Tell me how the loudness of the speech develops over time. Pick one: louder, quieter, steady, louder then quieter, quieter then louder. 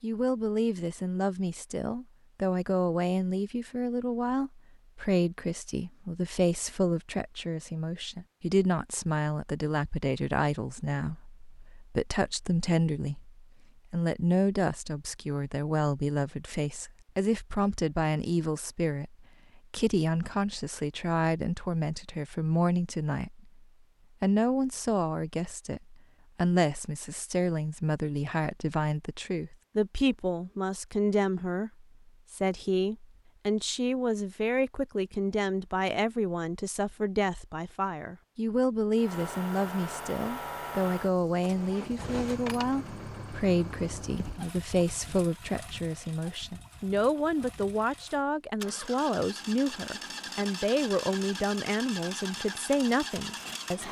steady.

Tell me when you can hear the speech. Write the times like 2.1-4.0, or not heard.
0.0-53.8.